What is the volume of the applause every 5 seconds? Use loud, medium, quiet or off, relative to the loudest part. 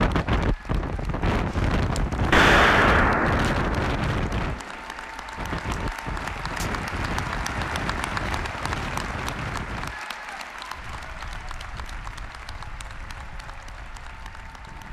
medium, loud, medium.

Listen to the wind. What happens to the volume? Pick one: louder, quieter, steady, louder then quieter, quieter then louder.
quieter.